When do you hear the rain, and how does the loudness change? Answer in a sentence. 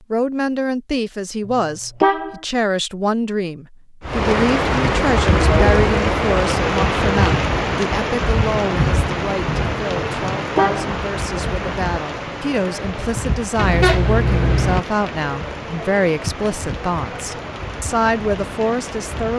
The rain can be heard from 4.0 to 19.3 s, getting quieter.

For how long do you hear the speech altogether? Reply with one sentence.
The speech can be heard for 19 seconds in total.